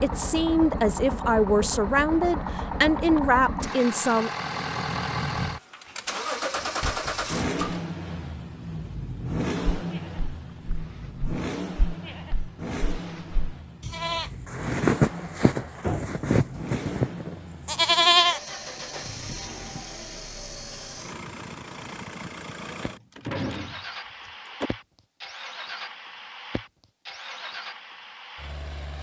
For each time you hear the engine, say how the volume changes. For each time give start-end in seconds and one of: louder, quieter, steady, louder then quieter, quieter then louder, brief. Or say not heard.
0.0-28.9 quieter.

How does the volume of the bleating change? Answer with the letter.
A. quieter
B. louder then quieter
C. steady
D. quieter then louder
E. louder
E.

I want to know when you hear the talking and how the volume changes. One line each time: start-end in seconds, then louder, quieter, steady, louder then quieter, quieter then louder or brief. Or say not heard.
0.0-4.3 steady.